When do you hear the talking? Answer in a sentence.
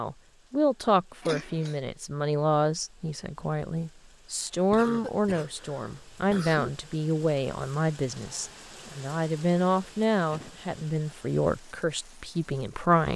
The talking can be heard from 0.0 to 13.1 s.